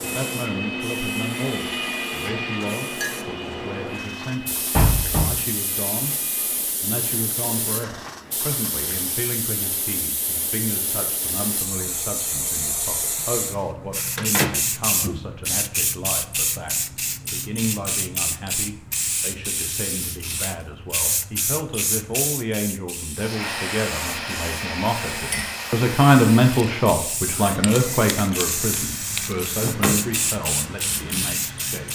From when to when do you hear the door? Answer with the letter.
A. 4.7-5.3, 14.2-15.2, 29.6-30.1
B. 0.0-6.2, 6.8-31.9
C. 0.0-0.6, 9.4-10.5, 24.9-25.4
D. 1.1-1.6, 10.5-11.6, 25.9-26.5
A.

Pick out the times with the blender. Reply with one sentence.
The blender can be heard from 0.0 to 6.7 s and from 23.1 to 31.9 s.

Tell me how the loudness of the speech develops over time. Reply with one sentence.
The volume of the speech goes up.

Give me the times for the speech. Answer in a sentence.
You can hear the speech from 0.0 to 6.2 s and from 6.8 to 31.9 s.